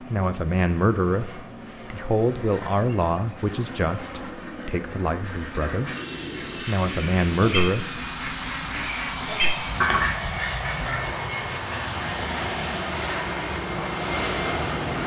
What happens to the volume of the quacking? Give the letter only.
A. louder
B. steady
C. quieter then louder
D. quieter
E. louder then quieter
A.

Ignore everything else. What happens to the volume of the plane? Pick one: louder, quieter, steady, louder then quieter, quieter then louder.
louder.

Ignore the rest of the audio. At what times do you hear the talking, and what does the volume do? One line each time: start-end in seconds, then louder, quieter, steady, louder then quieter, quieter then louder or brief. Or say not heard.
0.0-6.0 quieter
6.6-8.1 brief.